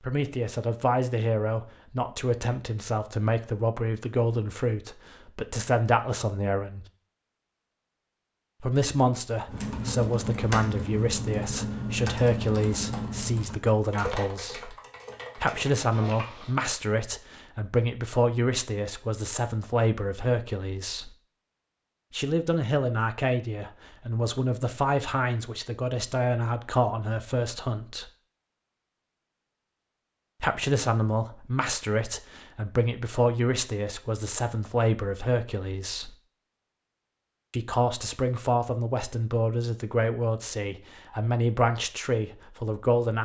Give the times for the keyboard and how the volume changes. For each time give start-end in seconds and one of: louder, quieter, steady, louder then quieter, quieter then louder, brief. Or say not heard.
9.4-16.6 quieter.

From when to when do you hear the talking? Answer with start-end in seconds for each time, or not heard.
0.0-6.8, 8.6-14.8, 15.3-21.1, 22.1-28.1, 30.4-36.1, 37.5-43.2.